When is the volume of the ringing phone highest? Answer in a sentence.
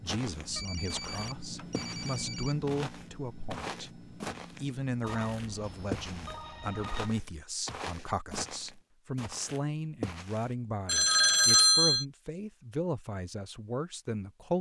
The loudest moment of the ringing phone is at 12 seconds.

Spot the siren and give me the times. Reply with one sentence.
The siren can't be heard in this clip.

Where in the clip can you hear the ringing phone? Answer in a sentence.
You can hear the ringing phone from 0.3 to 2.7 s, from 5.0 to 7.2 s and from 10.8 to 12.1 s.